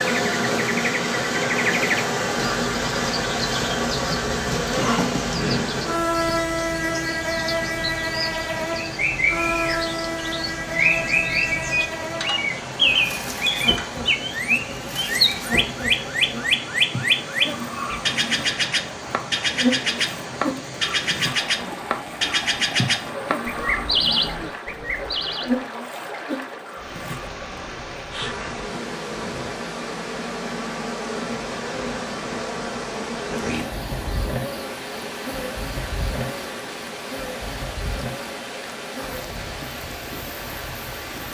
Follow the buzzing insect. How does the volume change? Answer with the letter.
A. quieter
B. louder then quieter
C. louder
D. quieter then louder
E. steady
A.